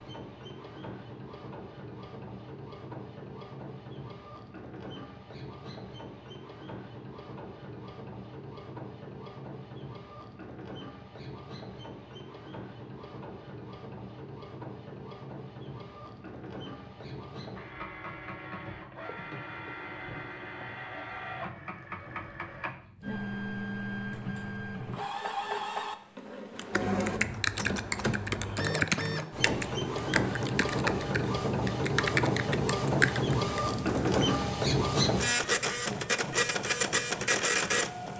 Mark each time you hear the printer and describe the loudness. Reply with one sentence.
You can hear the printer from 0.0 to 38.1 s, getting louder.